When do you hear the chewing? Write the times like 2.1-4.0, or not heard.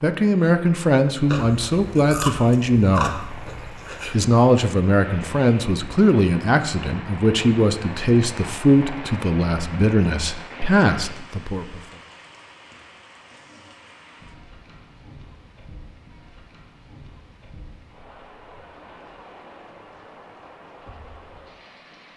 1.2-4.2.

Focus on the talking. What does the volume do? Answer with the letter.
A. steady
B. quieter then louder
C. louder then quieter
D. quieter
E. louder
A.